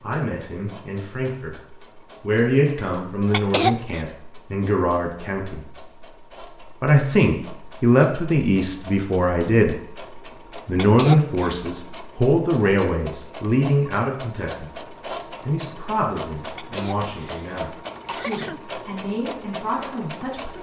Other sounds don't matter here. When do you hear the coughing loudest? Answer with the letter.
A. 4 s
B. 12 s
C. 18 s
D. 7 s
A.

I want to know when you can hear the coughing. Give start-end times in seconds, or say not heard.
3.3-4.0, 10.8-11.6, 16.6-18.6.